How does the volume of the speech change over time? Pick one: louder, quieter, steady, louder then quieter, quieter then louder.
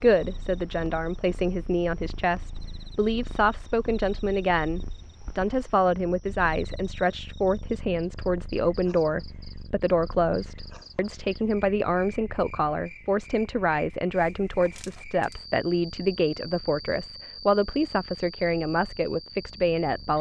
steady.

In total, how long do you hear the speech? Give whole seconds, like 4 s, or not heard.
20 s.